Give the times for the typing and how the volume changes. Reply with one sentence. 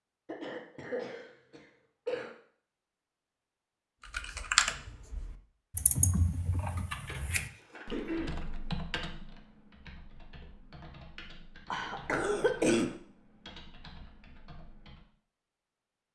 You can hear the typing from 4.0 to 15.1 s, getting quieter.